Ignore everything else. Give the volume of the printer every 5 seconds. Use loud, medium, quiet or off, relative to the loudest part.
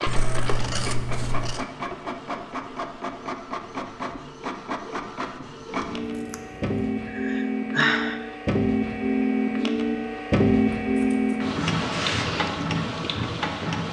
medium, loud, loud.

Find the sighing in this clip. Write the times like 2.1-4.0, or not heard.
7.0-8.3.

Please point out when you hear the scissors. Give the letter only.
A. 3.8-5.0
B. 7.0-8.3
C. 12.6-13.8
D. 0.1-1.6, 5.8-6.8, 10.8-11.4
D.